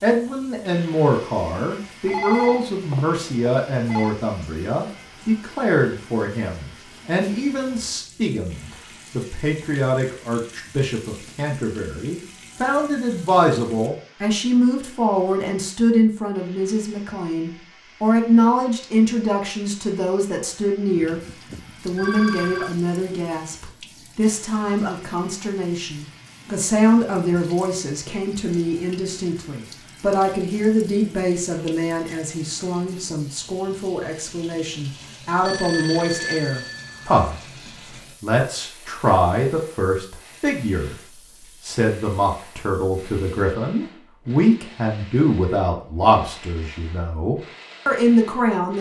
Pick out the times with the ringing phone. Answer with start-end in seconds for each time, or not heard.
2.0-4.2, 20.9-22.8, 35.3-37.7.